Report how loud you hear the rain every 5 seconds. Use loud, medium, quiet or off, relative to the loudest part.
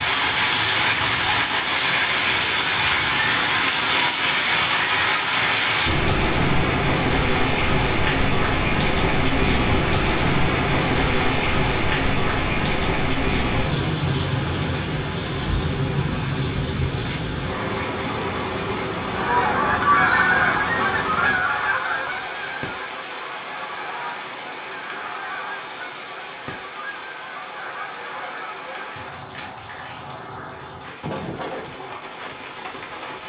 loud, loud, loud, medium, medium, quiet, quiet.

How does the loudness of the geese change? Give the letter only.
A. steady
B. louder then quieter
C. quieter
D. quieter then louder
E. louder
C.